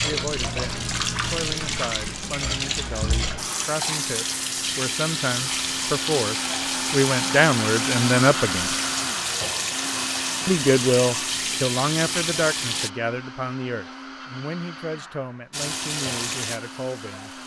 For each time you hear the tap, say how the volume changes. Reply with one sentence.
The tap can be heard from 0.0 to 12.9 s, at a steady volume; and briefly from 15.5 to 17.4 s.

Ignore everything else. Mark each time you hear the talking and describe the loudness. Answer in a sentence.
You can hear the talking from 0.0 to 8.8 s, getting louder; and from 10.4 to 17.3 s, getting quieter.